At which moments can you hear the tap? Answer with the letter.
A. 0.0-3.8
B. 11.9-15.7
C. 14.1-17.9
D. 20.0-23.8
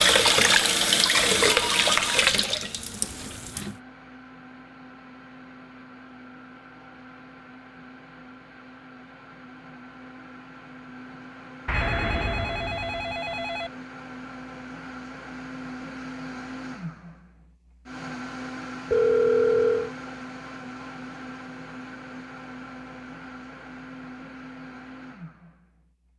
A.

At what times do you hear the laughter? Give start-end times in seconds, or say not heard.
not heard.